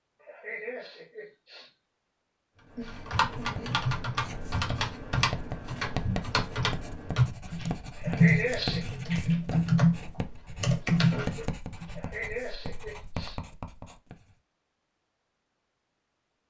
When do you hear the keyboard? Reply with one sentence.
You can hear the keyboard from 2.8 to 12.0 s.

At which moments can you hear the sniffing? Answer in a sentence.
You can hear the sniffing from 0.2 to 1.8 s, from 8.0 to 8.9 s and from 11.9 to 13.4 s.